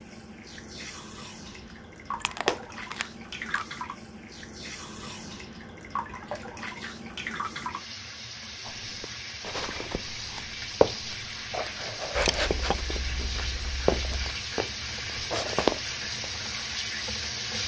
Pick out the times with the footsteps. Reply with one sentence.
The footsteps can be heard from 8.7 to 16.4 s.